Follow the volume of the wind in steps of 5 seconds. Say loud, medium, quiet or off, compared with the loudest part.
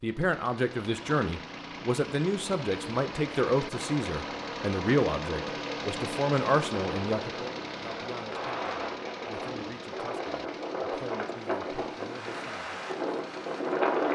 off, medium, loud.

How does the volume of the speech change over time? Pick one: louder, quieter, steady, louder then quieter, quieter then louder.
quieter.